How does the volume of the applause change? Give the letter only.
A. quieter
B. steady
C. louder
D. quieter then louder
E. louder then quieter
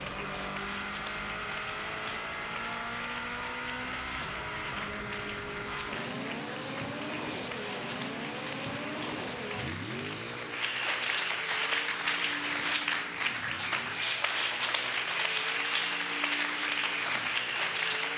C.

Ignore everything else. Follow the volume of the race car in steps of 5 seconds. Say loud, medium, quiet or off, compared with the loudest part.
loud, loud, medium, medium.